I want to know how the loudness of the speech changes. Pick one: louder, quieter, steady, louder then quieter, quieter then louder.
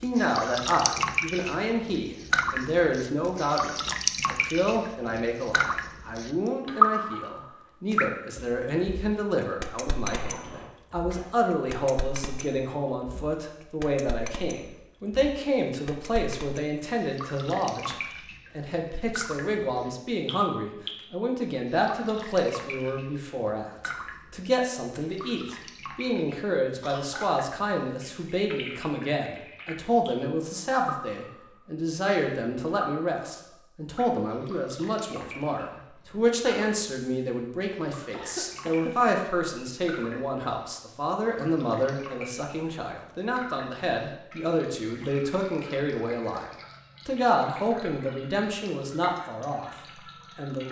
steady.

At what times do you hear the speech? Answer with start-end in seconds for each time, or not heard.
0.0-17.9, 18.6-50.6.